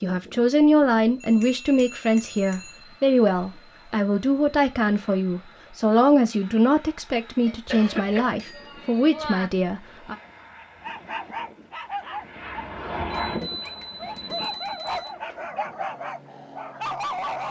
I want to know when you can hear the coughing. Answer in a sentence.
The coughing can be heard from 7.7 to 8.4 s.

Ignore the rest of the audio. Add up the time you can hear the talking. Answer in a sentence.
The talking can be heard for 10 seconds in total.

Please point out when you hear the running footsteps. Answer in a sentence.
You can't hear the running footsteps here.